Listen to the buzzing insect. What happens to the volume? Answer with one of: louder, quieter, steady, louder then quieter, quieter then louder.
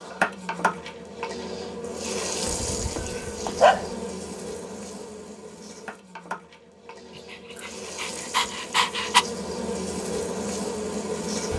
quieter then louder.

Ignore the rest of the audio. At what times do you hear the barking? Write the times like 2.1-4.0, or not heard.
2.5-3.9, 7.3-9.2.